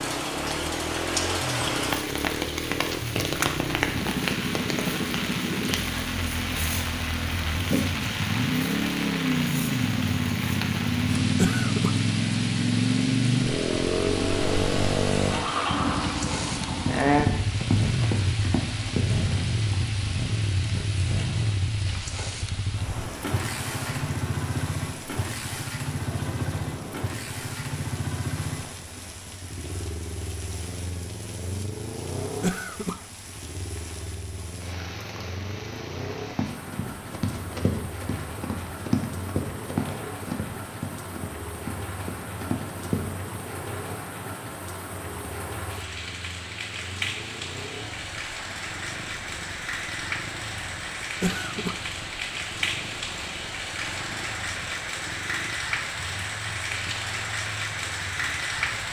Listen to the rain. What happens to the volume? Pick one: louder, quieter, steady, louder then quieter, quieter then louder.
quieter then louder.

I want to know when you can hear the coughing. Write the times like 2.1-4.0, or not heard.
11.3-12.0, 32.2-33.0, 51.2-51.9.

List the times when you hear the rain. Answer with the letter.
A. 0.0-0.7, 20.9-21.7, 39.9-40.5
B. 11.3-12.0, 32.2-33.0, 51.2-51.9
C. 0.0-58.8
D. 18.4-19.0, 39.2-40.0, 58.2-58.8
C.